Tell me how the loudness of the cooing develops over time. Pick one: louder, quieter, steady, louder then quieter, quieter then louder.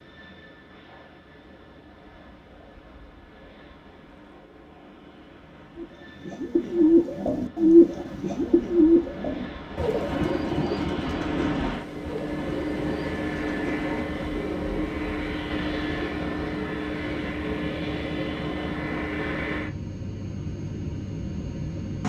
quieter.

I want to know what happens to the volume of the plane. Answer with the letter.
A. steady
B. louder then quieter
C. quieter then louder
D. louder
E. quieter
D.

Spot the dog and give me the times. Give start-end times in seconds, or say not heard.
not heard.